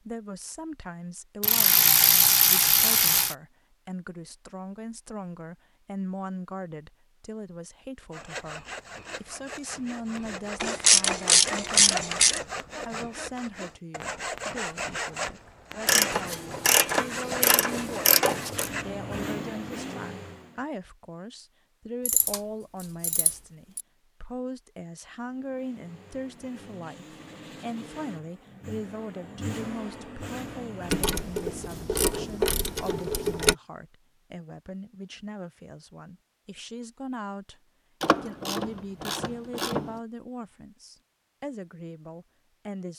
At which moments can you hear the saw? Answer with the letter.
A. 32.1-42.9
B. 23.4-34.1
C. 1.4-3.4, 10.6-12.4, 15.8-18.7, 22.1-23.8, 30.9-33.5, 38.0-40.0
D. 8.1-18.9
D.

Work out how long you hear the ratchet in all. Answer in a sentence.
You can hear the ratchet for 13 seconds altogether.